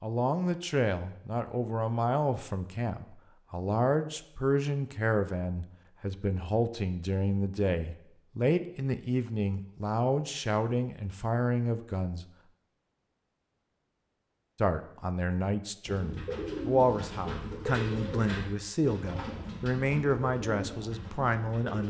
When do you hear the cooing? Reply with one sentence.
You can hear the cooing from 15.8 to 21.8 s.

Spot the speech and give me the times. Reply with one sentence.
You can hear the speech from 0.0 to 12.2 s and from 14.6 to 21.8 s.